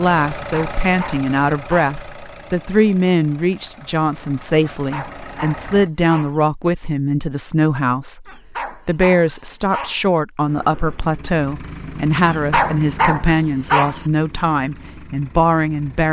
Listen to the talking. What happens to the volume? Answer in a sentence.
The volume of the talking stays about the same.